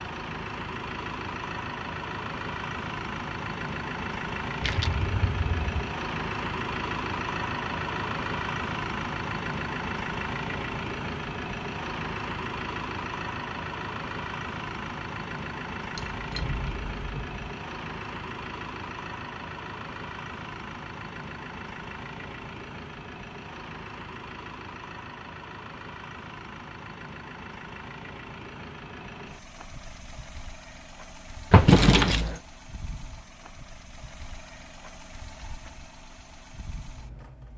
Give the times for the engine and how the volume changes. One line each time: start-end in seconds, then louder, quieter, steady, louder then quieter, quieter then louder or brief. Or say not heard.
0.0-37.5 quieter.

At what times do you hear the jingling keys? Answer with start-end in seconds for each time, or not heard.
4.6-5.8, 15.9-17.4, 31.5-32.4.